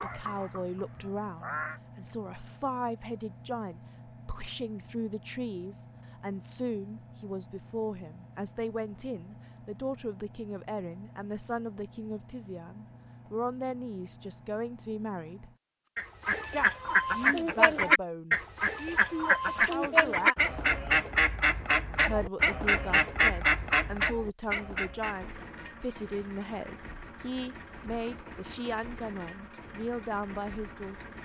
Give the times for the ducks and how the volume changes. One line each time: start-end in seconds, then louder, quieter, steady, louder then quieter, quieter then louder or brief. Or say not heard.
0.0-1.8 brief
15.9-25.4 steady.